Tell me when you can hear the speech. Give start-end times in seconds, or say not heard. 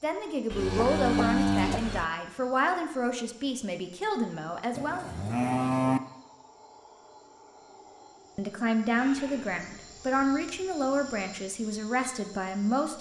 0.0-5.0, 8.3-12.9.